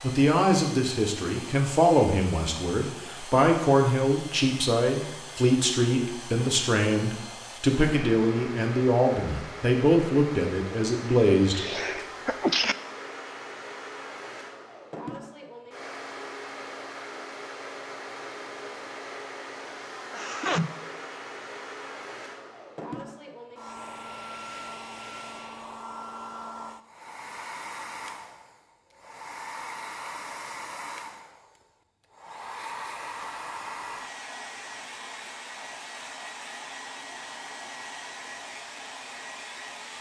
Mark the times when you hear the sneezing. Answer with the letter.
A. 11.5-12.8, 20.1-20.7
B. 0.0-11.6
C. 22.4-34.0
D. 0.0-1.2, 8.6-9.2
A.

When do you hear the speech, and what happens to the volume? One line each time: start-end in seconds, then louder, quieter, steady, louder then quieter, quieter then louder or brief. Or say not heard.
0.0-11.6 steady.